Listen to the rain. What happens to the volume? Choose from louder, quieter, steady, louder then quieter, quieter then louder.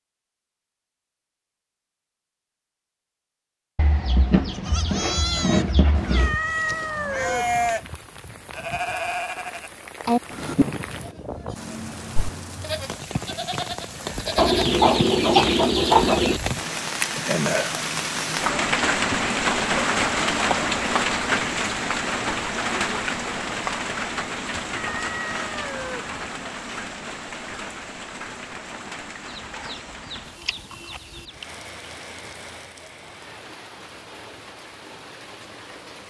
louder then quieter.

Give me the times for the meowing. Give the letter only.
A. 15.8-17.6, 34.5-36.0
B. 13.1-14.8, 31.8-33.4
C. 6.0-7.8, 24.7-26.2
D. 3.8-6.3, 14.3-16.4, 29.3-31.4
C.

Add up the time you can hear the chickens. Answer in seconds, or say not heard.
7 s.